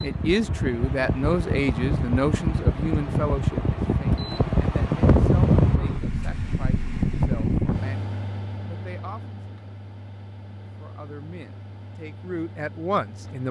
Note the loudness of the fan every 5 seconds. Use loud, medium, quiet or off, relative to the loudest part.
loud, loud, quiet.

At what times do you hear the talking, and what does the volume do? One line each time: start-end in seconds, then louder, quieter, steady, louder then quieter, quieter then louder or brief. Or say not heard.
0.0-9.4 quieter
10.8-13.4 brief.